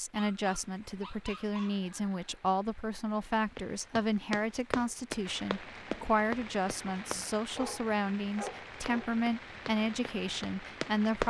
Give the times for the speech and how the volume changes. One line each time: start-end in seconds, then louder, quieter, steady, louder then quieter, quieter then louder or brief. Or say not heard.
0.0-11.2 steady.